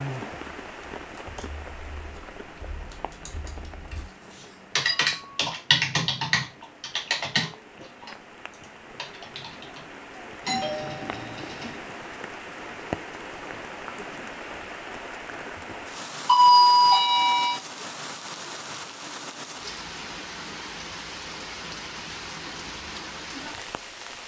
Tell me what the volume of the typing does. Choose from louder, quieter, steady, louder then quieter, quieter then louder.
louder then quieter.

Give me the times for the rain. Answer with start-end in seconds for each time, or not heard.
0.0-24.2.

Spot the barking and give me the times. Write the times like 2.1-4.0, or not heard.
not heard.